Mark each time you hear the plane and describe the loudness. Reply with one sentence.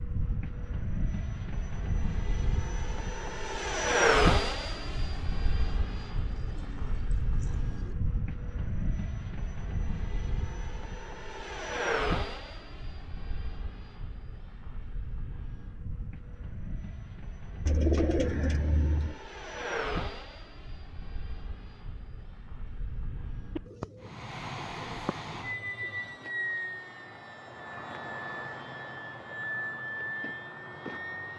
The plane can be heard from 0.0 to 31.3 s, getting quieter then louder.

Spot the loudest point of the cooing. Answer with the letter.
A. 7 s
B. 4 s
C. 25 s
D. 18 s
D.